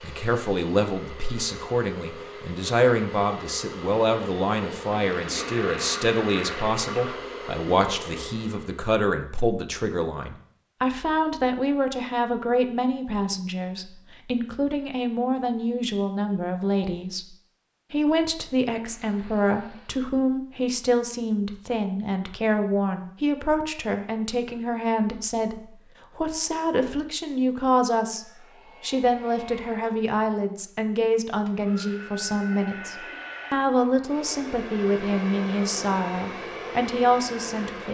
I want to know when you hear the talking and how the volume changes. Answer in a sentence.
The talking can be heard from 0.0 to 17.2 s, at a steady volume; and from 17.9 to 37.8 s, at a steady volume.